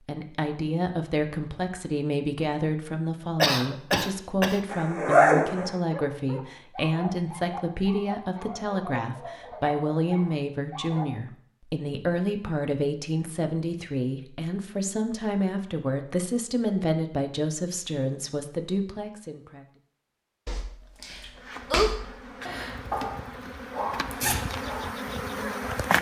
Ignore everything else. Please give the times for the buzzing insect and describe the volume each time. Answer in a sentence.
The buzzing insect can be heard from 21.4 to 25.9 s, getting louder.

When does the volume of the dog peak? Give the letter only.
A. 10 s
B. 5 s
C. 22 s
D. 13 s
C.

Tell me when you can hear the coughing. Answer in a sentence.
You can hear the coughing from 3.4 to 4.6 s.